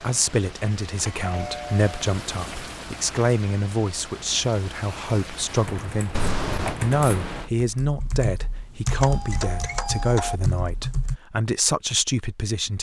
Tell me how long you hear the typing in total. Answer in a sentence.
You can hear the typing for 6 seconds altogether.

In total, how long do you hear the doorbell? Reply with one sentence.
The doorbell can be heard for 3 seconds in total.